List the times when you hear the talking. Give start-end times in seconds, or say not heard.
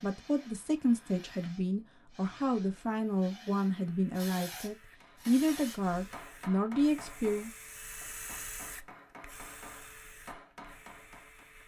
0.0-7.5.